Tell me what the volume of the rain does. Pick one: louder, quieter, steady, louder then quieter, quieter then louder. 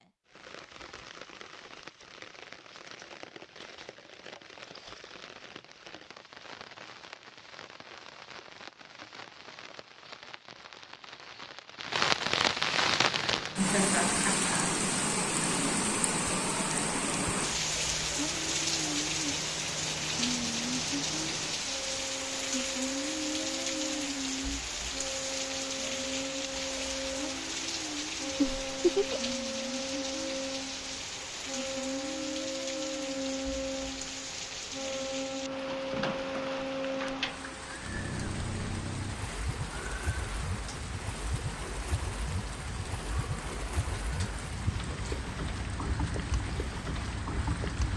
louder then quieter.